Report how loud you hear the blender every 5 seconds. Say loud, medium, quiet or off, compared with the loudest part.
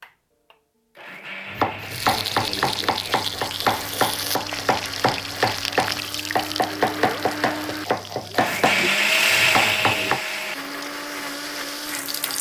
quiet, loud, medium.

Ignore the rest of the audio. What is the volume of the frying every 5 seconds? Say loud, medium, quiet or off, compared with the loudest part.
loud, loud, medium.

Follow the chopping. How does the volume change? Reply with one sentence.
The volume of the chopping stays about the same.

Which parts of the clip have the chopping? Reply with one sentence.
You can hear the chopping from 1.5 to 10.2 s.